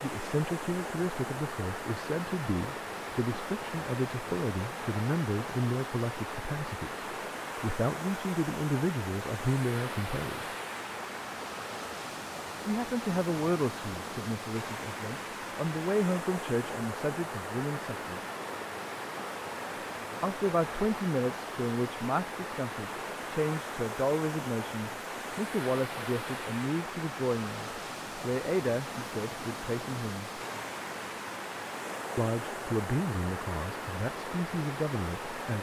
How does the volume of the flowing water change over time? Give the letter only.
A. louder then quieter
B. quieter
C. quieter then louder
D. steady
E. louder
D.